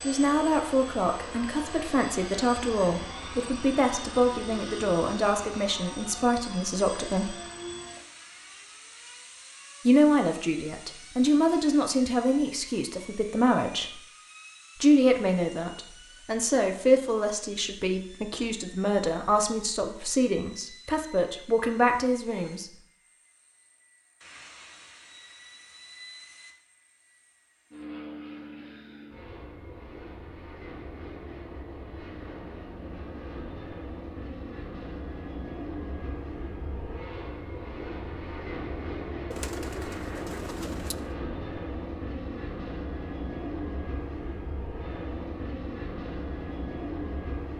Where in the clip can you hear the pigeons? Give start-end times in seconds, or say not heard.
39.3-41.1.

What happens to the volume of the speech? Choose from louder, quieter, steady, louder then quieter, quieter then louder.
steady.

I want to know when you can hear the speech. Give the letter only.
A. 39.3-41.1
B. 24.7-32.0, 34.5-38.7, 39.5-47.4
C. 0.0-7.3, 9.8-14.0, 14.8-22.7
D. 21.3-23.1
C.